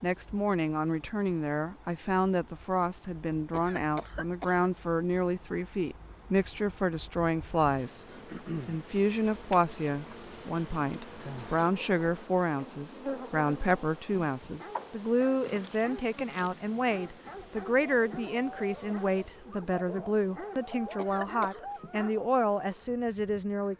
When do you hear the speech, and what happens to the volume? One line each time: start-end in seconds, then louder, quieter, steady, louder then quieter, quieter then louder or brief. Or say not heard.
0.0-8.1 steady
8.7-23.7 steady.